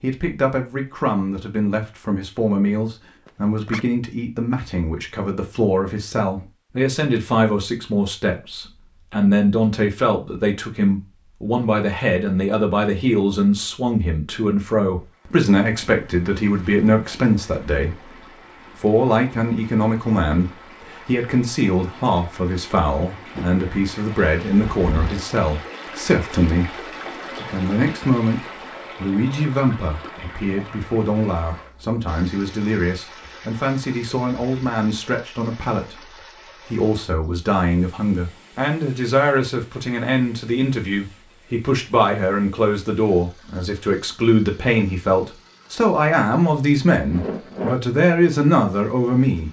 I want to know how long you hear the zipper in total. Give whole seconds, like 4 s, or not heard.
2 s.